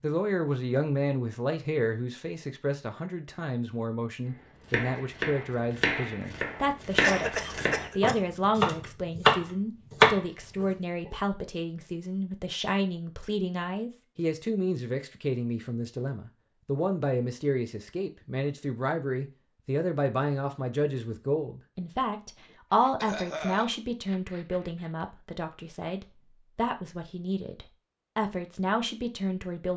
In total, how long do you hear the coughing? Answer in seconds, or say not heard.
4 s.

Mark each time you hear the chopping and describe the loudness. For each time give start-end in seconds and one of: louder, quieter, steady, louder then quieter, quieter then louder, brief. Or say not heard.
4.7-10.7 louder.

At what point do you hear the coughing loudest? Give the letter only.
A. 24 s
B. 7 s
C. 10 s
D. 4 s
B.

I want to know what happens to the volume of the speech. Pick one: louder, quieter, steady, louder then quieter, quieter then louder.
steady.